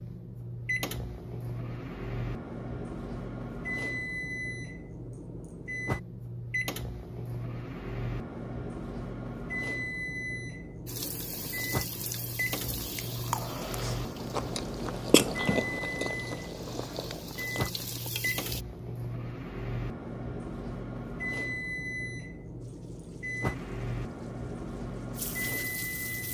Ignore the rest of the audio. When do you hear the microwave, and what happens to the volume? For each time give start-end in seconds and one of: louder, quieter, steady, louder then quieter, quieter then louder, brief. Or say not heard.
0.0-26.2 steady.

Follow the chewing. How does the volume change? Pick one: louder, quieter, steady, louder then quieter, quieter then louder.
louder then quieter.